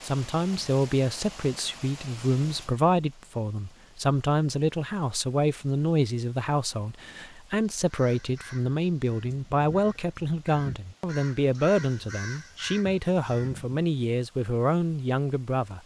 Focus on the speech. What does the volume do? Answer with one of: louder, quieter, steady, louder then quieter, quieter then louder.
steady.